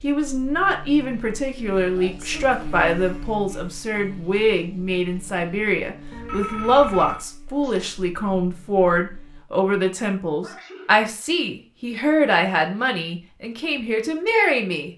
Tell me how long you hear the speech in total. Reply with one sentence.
You can hear the speech for 15 seconds altogether.